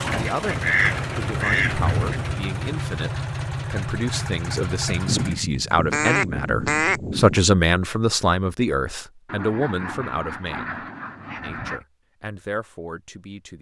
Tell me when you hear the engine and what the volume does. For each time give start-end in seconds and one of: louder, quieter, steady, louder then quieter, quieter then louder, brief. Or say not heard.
0.0-5.5 steady.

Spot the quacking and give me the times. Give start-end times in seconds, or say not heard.
0.1-2.4, 5.0-7.4, 9.2-11.8.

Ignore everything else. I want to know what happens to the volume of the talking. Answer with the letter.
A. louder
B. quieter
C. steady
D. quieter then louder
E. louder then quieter
E.